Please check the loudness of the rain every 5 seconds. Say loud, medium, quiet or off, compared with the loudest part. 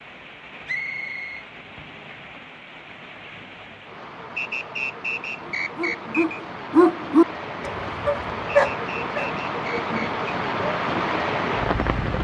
quiet, medium, loud.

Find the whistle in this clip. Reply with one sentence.
You can hear the whistle from 0.7 to 1.4 s, from 4.3 to 6.4 s and from 8.4 to 10.1 s.